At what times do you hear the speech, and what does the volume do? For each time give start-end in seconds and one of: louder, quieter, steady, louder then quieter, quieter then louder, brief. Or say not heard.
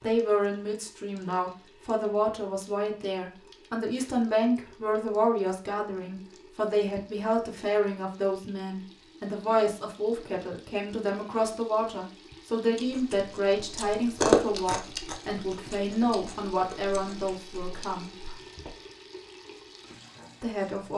0.0-18.1 steady
20.4-20.9 brief.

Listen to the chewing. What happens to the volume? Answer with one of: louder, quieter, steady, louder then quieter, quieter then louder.
louder then quieter.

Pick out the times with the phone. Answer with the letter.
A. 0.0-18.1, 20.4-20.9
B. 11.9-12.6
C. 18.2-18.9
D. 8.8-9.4
C.